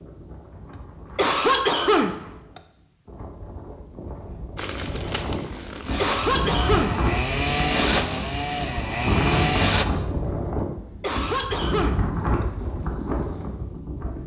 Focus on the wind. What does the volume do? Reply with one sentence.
The volume of the wind goes up.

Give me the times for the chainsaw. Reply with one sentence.
The chainsaw can be heard from 4.5 to 9.8 s.